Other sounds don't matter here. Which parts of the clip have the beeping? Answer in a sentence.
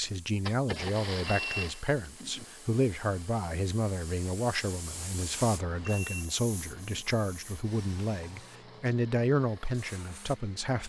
The beeping can be heard from 1.2 to 2.5 s and from 5.8 to 7.0 s.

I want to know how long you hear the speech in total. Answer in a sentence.
The speech can be heard for 11 seconds in total.